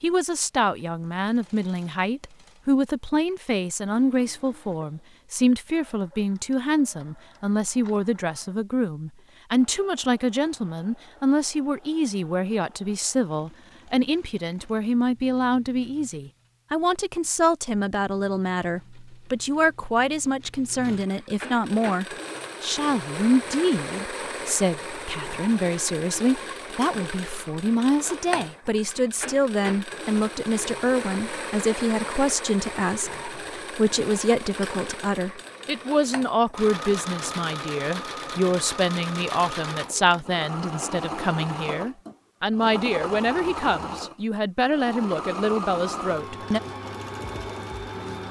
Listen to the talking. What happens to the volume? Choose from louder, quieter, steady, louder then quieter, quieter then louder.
steady.